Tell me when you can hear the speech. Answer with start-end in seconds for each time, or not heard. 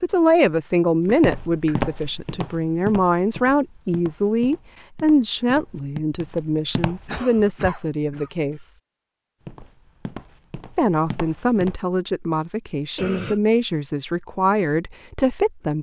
0.0-8.7, 10.8-15.7.